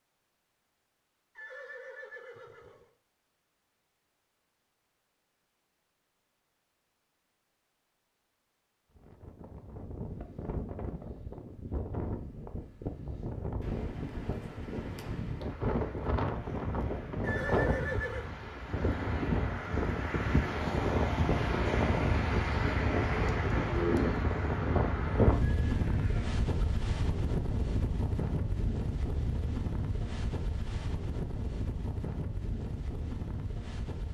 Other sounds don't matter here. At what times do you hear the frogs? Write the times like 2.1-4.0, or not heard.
not heard.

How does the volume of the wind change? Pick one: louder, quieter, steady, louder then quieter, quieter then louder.
louder then quieter.